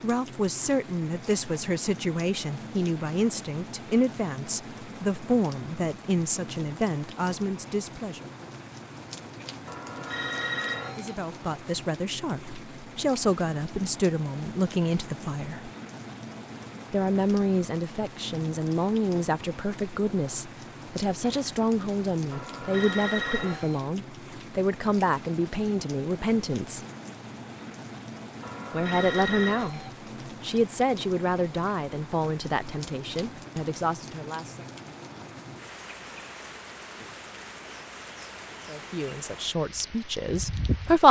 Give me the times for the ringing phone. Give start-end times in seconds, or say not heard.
9.7-11.2, 22.3-23.8, 28.4-29.9.